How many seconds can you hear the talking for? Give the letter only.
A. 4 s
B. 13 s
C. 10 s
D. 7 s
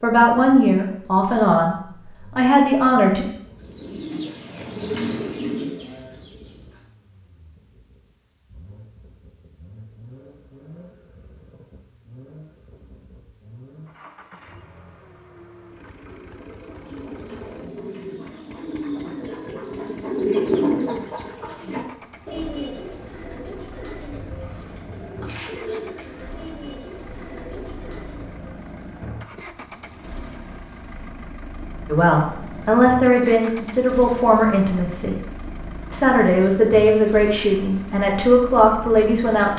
C.